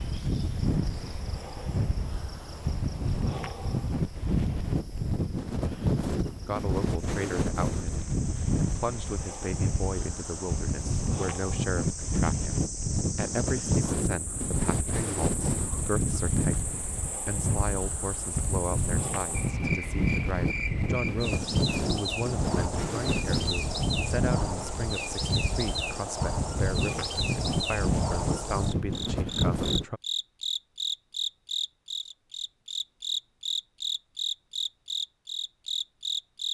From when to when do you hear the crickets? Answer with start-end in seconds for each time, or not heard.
0.0-36.4.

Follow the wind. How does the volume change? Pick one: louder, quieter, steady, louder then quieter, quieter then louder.
steady.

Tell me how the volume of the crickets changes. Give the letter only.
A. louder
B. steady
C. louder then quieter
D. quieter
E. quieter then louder
A.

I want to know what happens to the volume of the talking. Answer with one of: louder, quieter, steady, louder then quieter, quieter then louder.
steady.